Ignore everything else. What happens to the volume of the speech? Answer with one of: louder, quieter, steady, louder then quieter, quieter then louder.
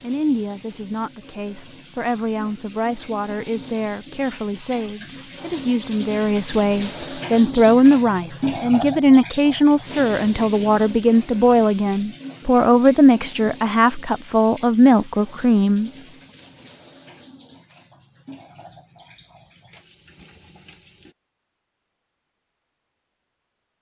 louder.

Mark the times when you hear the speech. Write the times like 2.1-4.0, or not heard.
0.0-15.9.